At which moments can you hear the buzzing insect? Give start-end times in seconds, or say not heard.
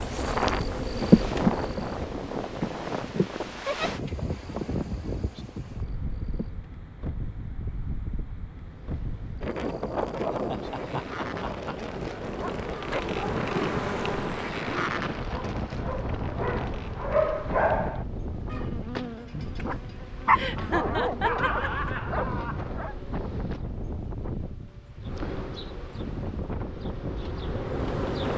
0.0-6.7, 8.6-23.6, 25.0-28.3.